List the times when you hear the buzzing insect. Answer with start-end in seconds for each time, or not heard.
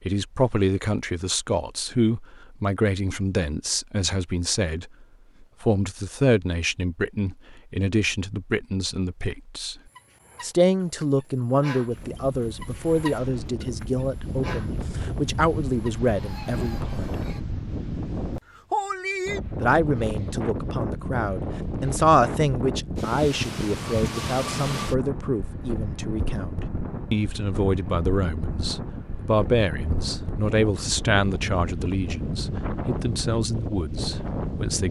not heard.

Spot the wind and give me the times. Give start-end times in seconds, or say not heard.
11.8-34.8.